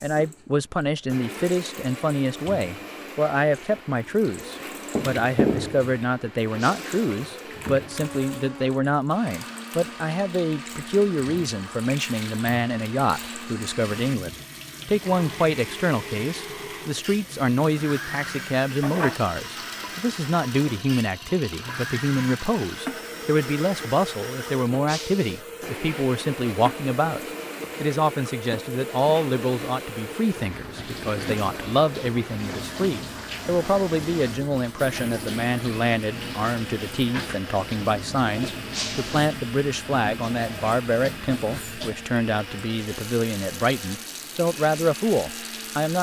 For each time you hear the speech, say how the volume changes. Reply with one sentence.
The speech can be heard from 0.0 to 45.9 s, at a steady volume.